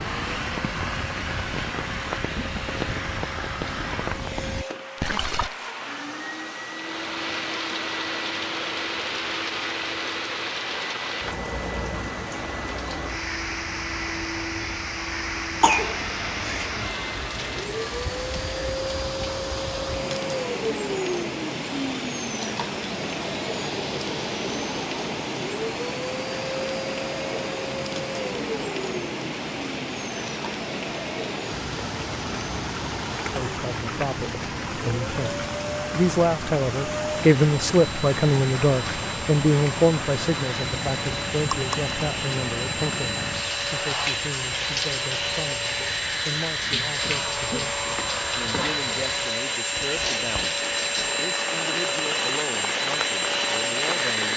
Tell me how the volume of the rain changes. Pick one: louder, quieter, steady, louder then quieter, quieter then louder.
steady.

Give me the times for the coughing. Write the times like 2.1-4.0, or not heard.
15.6-16.7.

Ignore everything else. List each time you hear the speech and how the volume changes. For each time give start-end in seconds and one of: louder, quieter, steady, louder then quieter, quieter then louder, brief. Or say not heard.
33.3-54.3 quieter.